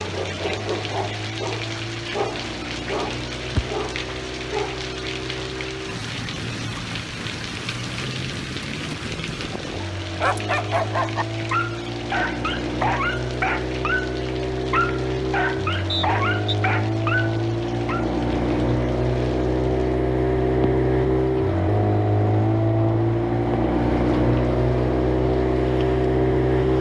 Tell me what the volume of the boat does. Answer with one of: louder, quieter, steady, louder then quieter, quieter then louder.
louder.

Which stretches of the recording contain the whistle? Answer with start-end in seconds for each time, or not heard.
15.8-16.6.